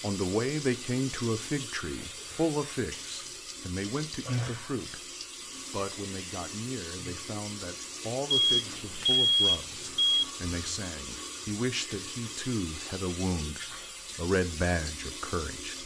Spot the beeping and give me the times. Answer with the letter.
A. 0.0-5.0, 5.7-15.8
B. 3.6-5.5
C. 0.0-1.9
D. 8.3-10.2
D.